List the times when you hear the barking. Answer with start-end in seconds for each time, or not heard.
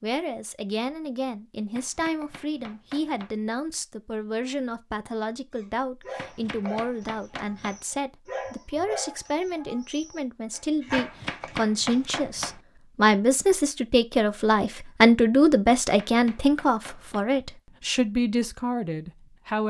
5.5-12.2.